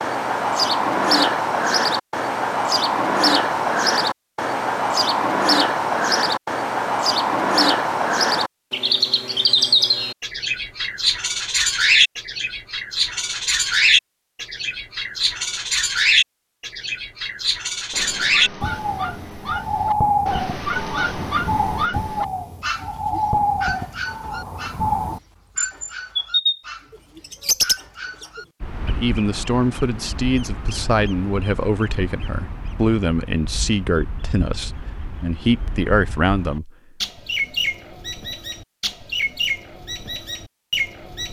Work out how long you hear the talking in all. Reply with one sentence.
The talking can be heard for 8 seconds in total.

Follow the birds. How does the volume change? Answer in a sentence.
The loudness of the birds goes down.